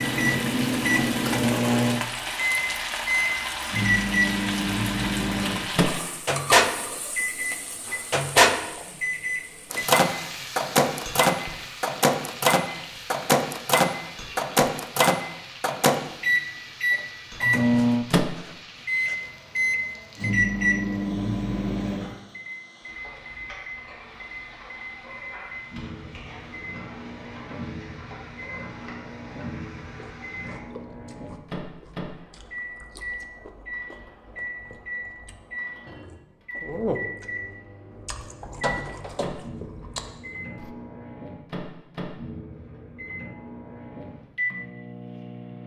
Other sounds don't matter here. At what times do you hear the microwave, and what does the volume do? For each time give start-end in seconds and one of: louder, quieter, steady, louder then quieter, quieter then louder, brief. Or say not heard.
0.0-45.6 quieter.